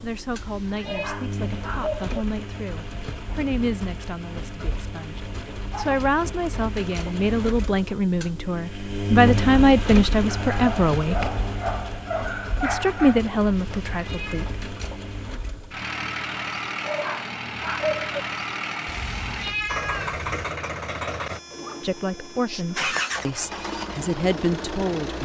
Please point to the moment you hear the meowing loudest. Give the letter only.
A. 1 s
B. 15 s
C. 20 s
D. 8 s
C.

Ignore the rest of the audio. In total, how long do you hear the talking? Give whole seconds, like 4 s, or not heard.
17 s.